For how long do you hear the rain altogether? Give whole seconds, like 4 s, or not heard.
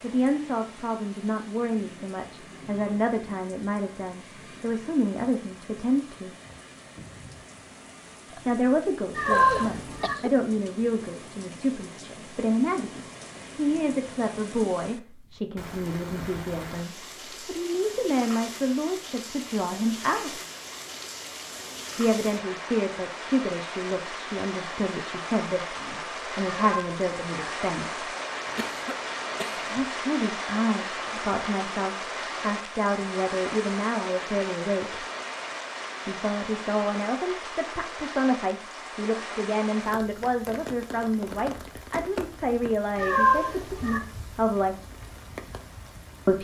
46 s.